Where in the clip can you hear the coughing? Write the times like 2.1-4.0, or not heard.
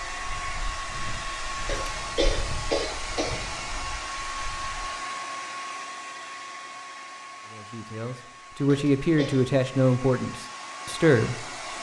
1.6-3.5, 8.7-9.6.